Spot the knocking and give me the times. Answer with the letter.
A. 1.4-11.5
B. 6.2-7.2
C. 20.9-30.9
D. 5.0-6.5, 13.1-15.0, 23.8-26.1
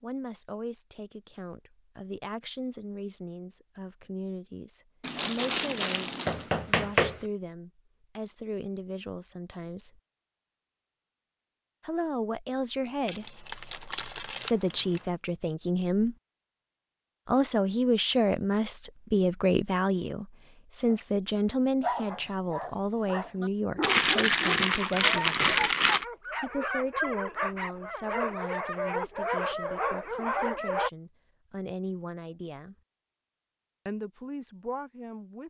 B.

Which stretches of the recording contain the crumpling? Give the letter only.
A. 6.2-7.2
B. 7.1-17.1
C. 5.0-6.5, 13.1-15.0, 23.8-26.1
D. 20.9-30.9
C.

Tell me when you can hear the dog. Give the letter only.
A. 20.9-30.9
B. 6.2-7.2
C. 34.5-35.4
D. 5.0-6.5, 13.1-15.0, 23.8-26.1
A.